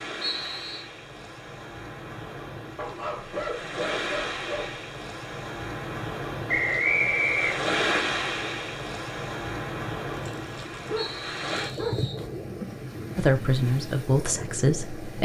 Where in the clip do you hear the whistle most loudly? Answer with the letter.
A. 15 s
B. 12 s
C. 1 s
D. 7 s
D.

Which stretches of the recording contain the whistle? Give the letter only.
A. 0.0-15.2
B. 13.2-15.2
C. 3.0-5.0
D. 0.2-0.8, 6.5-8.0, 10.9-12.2
D.